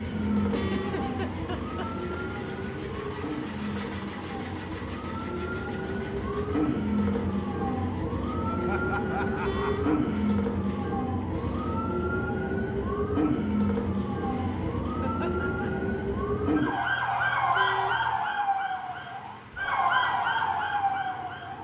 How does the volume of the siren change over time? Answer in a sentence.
The volume of the siren goes up.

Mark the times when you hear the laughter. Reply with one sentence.
The laughter can be heard from 0.5 to 2.2 s, from 8.4 to 10.2 s and from 15.0 to 15.7 s.